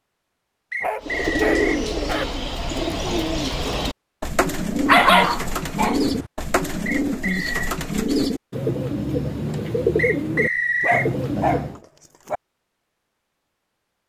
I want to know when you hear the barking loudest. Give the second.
5 s.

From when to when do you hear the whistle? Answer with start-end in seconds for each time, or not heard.
0.7-1.7, 6.8-7.8, 9.9-11.1.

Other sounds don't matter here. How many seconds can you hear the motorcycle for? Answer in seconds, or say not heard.
not heard.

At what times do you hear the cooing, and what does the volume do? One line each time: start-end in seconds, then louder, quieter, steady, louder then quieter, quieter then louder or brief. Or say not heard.
1.0-11.8 steady.